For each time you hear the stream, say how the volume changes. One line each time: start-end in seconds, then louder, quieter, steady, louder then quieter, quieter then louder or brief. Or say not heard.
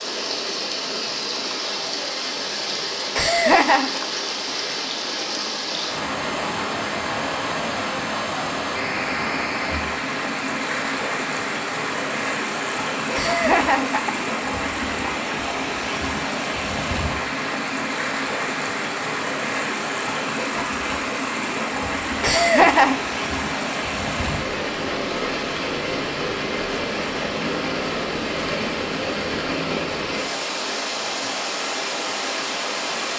0.0-33.1 steady.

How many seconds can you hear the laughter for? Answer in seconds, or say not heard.
3 s.